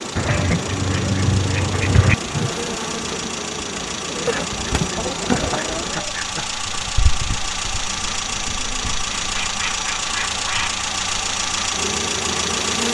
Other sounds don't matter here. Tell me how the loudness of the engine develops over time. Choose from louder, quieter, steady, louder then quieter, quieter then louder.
louder.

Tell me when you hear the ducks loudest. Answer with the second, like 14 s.
2 s.